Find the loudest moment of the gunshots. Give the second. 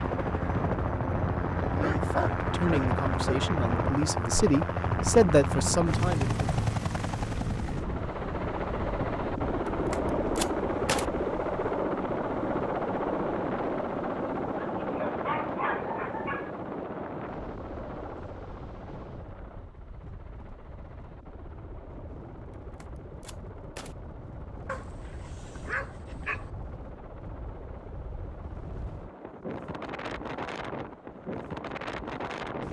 11 s.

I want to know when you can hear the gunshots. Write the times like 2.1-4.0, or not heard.
9.9-11.1, 22.8-23.9.